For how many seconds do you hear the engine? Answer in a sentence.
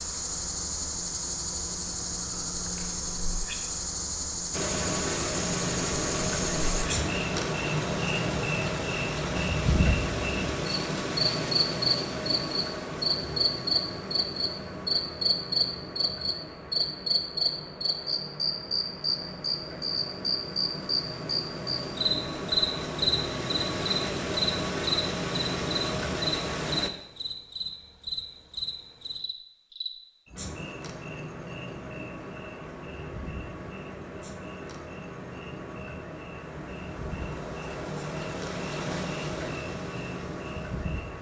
You can hear the engine for 33 seconds altogether.